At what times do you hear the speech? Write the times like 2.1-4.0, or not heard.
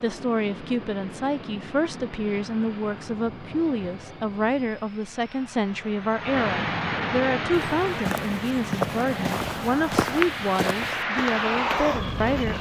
0.0-12.5.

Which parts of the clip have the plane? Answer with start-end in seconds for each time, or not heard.
0.0-12.5.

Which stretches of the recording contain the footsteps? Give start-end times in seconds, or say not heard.
7.5-12.5.